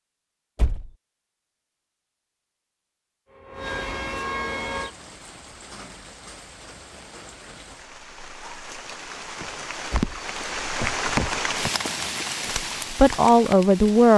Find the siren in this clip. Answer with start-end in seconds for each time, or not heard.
3.2-5.0.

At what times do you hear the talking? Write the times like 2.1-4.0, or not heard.
12.5-14.1.